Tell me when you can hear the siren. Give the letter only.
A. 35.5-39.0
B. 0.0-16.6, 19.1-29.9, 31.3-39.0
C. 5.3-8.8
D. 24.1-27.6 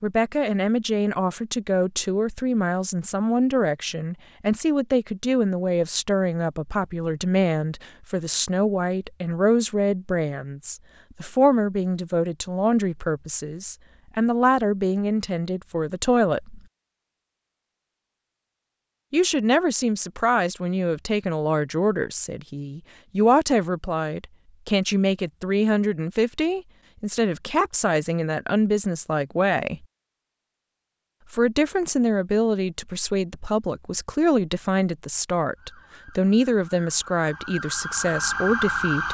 A.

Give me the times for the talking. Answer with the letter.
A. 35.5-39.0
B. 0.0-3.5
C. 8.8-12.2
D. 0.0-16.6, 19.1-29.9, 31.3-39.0
D.